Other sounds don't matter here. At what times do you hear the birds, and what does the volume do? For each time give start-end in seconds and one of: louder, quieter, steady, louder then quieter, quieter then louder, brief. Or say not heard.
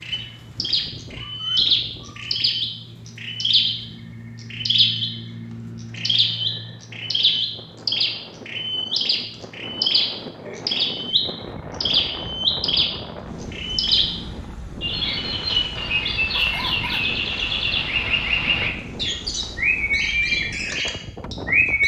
0.0-21.8 steady.